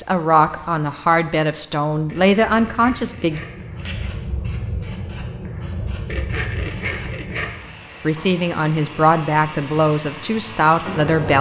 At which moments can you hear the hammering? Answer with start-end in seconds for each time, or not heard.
not heard.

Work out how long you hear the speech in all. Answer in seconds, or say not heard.
7 s.